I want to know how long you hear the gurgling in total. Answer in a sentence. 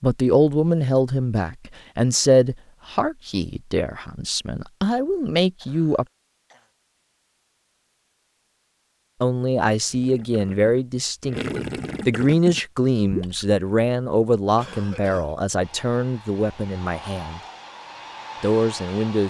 You can hear the gurgling for 4 seconds altogether.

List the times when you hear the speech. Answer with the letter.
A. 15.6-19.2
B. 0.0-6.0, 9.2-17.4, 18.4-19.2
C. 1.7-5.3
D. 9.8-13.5
B.